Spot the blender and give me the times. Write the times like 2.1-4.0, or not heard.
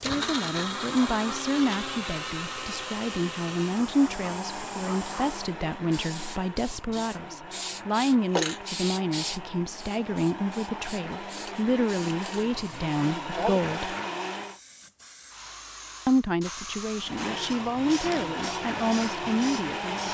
0.0-14.6, 17.0-20.0.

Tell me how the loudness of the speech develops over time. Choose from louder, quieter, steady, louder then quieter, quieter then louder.
steady.